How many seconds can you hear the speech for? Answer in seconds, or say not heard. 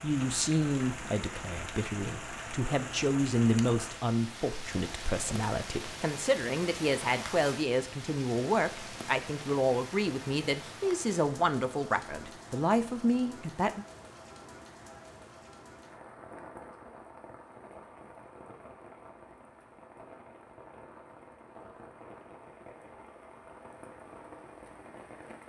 14 s.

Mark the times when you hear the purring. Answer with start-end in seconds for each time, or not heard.
not heard.